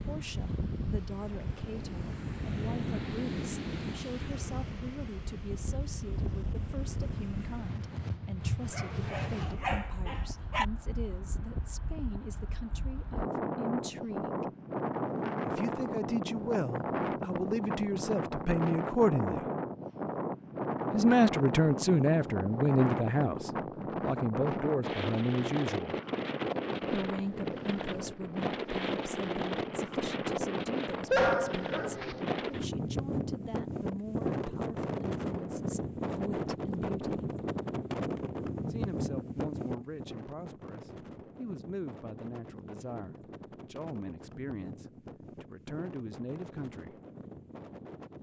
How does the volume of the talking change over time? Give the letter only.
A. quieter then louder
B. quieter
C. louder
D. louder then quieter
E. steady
D.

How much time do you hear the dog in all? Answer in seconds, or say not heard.
3 s.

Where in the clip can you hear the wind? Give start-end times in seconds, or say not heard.
0.0-48.1.